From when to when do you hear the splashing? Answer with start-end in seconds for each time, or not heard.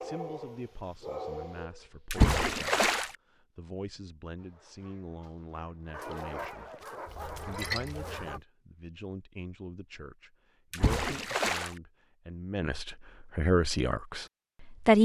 2.1-3.1, 7.0-8.3, 10.7-11.8.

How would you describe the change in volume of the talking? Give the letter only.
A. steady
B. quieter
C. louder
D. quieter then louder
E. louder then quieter
C.